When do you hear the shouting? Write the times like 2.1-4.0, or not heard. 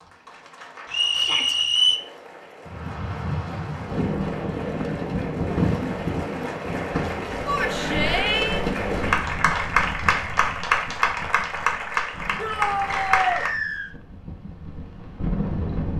1.1-1.6, 7.5-8.7, 12.3-13.4.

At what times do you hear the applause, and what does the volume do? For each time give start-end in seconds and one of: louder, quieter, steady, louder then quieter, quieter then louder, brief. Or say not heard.
0.0-13.5 louder.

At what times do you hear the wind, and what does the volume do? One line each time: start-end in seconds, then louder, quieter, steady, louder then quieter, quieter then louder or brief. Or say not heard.
2.6-15.9 quieter then louder.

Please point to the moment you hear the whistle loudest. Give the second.
2 s.